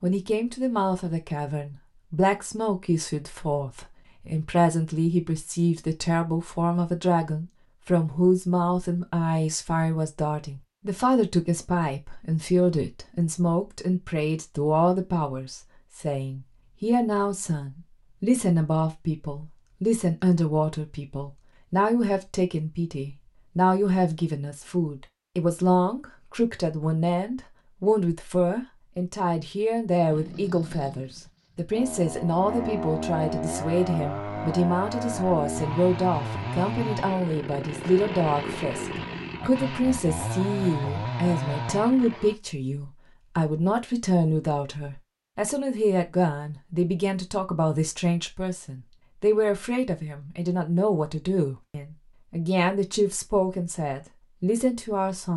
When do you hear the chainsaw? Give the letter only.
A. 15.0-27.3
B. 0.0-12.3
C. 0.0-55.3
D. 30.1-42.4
D.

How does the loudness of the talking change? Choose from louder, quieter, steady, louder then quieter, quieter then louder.
steady.